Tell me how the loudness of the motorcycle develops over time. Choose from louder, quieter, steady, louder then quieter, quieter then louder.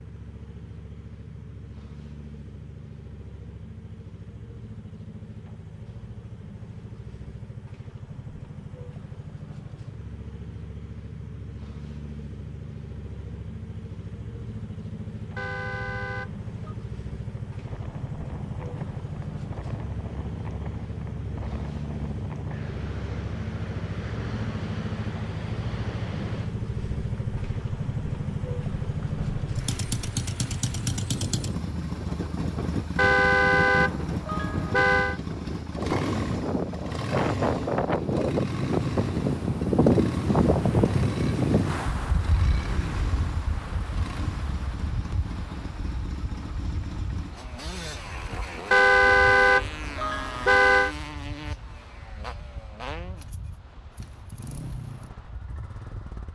louder then quieter.